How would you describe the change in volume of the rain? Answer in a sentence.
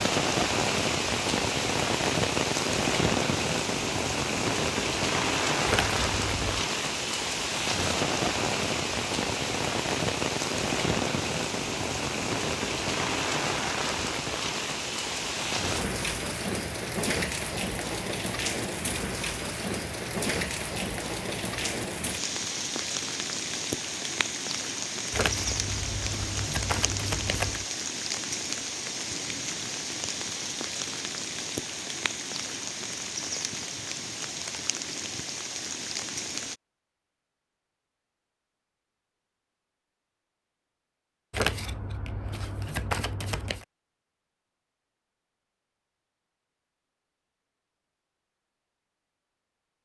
The volume of the rain goes down.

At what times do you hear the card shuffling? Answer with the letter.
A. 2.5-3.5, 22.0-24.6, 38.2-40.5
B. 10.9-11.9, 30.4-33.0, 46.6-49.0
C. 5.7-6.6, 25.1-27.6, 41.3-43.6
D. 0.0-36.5
C.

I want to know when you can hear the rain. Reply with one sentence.
You can hear the rain from 0.0 to 36.5 s.